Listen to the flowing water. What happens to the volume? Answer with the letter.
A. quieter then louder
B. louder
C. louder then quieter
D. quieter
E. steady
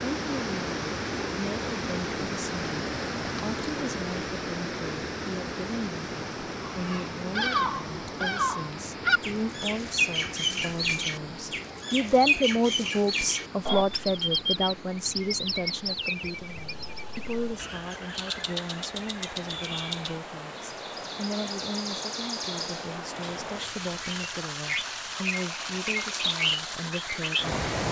A.